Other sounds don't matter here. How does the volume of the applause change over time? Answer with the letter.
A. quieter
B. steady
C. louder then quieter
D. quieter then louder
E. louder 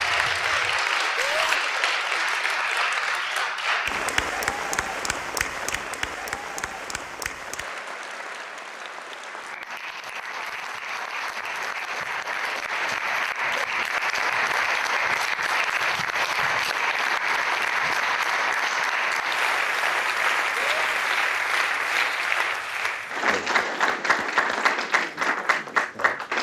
D.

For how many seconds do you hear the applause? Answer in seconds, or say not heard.
26 s.